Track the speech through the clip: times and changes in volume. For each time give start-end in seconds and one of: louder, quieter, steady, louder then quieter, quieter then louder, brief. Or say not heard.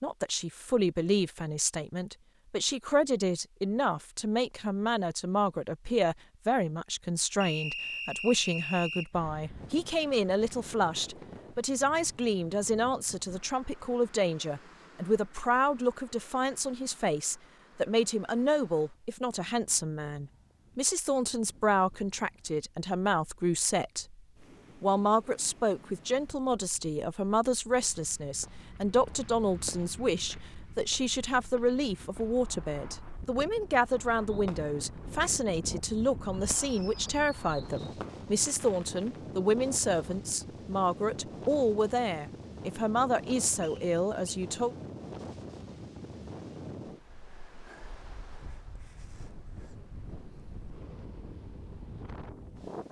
0.0-24.1 steady
24.8-44.8 steady.